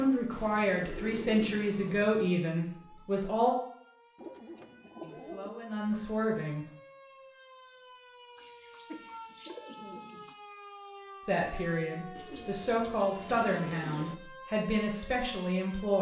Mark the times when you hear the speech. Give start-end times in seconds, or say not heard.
0.0-3.5, 5.0-6.7, 11.2-15.9.